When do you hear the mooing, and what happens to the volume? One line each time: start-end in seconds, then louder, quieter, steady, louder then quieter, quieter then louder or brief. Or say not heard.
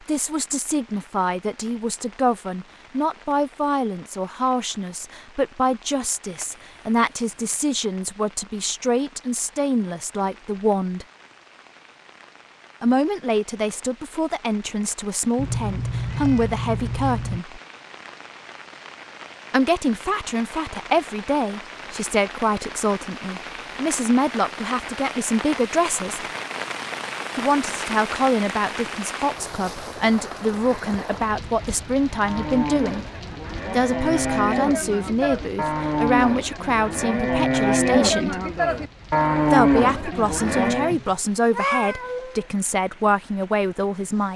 32.2-41.0 louder.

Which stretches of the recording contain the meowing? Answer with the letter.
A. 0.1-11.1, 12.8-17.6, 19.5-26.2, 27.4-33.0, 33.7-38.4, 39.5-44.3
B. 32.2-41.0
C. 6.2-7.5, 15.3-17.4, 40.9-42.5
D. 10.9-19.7
C.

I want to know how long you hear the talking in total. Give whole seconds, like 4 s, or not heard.
38 s.